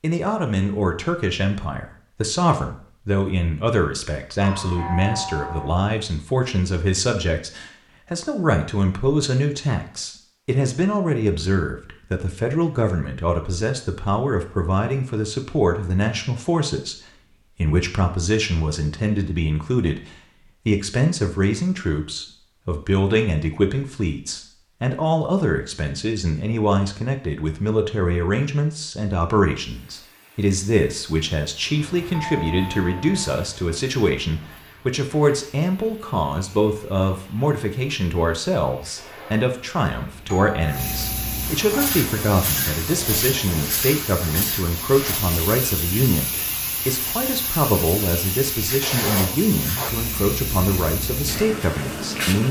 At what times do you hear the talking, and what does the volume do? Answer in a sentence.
The talking can be heard from 0.0 to 52.4 s, at a steady volume.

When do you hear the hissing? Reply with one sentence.
The hissing can be heard from 29.6 to 52.4 s.